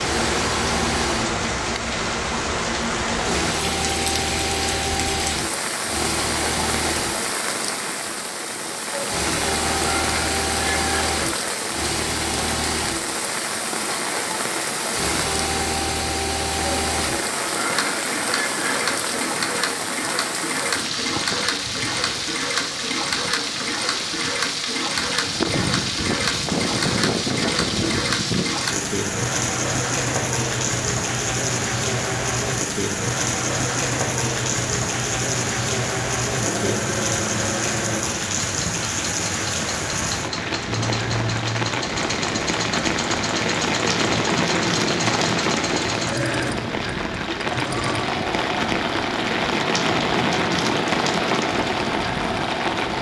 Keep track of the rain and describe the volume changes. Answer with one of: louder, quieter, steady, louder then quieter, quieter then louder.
steady.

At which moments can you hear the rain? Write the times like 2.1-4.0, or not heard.
0.0-52.9.